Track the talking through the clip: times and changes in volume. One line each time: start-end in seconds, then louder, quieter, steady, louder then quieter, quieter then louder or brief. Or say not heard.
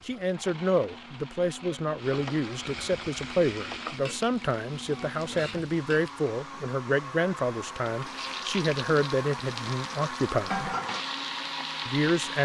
0.1-10.8 steady
11.8-12.4 brief.